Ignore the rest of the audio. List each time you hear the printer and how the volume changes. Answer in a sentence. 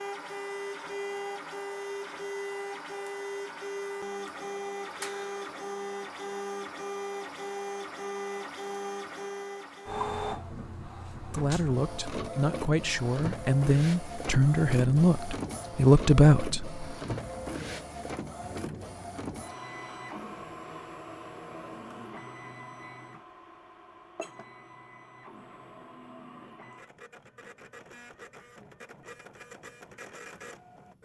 The printer can be heard from 0.0 to 31.0 s, getting quieter.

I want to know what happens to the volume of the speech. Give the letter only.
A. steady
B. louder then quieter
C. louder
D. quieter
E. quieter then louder
C.